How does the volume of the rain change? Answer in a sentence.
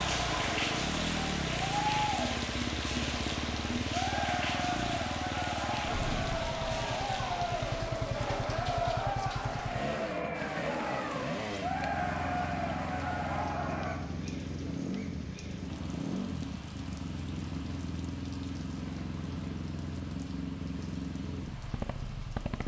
The loudness of the rain goes down.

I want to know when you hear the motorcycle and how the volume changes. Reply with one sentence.
The motorcycle can be heard from 0.0 to 22.6 s, at a steady volume.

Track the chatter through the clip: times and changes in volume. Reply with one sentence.
The chatter can be heard from 0.0 to 13.9 s, at a steady volume.